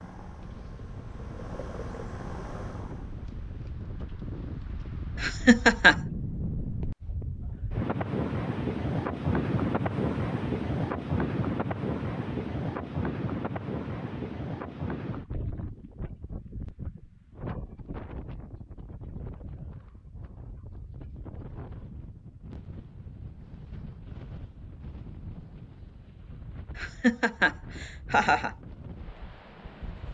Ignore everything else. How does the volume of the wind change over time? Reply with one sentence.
The loudness of the wind goes up, then down.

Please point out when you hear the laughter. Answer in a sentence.
The laughter can be heard from 5.2 to 6.0 s and from 26.8 to 28.5 s.